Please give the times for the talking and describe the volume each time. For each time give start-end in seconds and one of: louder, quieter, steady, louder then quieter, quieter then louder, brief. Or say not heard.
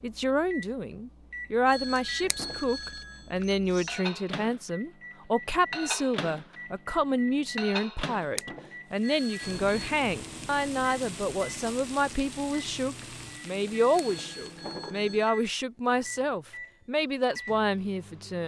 0.0-18.4 steady.